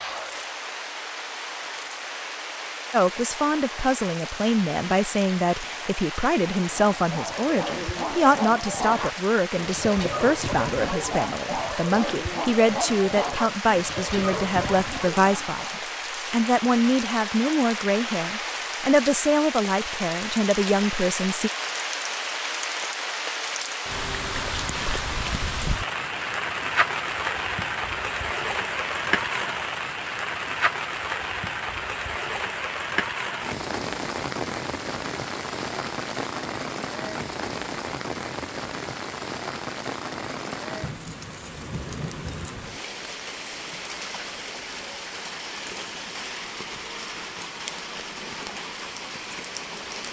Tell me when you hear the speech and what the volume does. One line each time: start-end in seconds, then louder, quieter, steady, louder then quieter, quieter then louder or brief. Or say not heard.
2.9-21.5 steady.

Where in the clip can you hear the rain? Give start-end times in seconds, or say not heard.
0.0-50.0.